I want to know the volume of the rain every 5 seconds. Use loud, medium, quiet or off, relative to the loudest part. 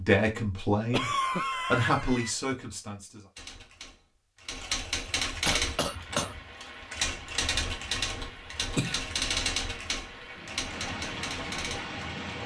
off, medium, loud.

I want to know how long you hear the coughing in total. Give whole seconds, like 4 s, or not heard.
3 s.